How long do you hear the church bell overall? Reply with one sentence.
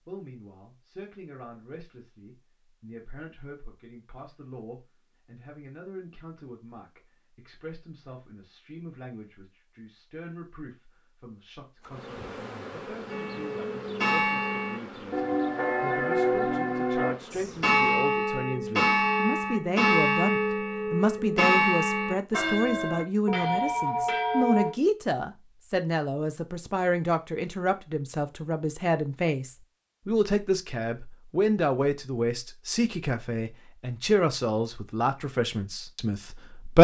The church bell can be heard for 12 seconds in total.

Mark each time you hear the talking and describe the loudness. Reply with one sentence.
You can hear the talking from 0.1 to 36.7 s, getting louder.